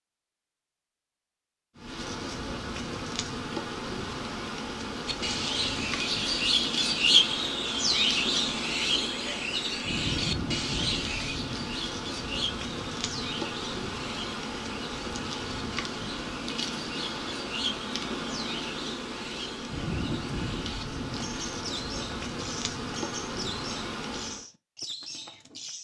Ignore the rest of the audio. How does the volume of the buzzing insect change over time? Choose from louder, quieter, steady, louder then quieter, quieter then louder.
steady.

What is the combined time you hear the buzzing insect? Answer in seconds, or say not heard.
23 s.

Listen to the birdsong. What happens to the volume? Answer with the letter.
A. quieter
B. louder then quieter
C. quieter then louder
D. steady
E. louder
A.